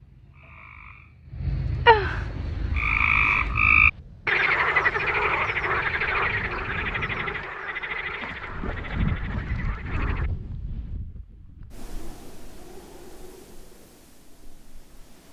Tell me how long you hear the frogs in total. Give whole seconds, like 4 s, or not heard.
10 s.